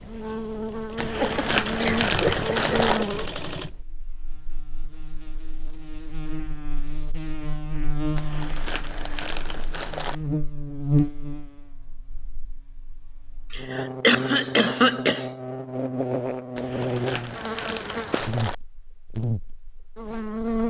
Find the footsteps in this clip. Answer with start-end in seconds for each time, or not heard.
not heard.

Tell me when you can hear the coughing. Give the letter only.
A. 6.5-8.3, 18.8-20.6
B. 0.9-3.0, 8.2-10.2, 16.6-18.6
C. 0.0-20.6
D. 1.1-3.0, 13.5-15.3
D.